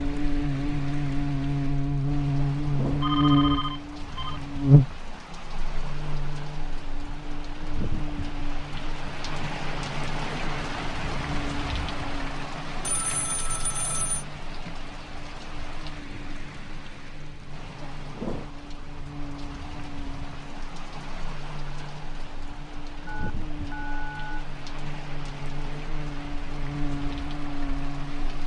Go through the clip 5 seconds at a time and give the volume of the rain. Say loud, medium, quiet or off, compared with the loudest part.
medium, loud, loud, medium, medium, medium.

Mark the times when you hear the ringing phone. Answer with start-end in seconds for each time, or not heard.
3.0-4.4, 12.8-14.2, 23.1-24.4.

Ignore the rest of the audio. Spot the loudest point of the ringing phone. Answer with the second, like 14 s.
3 s.